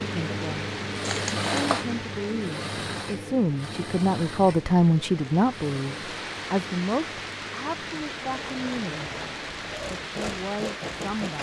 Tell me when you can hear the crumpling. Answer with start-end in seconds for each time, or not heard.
1.0-1.9.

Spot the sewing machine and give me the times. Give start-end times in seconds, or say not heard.
0.0-11.3.